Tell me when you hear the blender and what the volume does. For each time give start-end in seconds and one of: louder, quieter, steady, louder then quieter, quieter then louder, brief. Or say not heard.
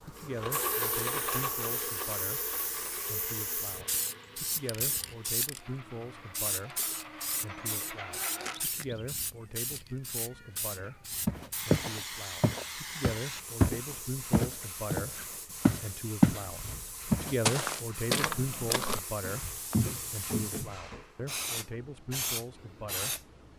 0.0-8.7 quieter then louder.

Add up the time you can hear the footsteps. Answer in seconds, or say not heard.
9 s.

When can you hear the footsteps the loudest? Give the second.
16 s.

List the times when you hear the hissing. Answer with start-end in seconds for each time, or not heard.
0.0-23.5.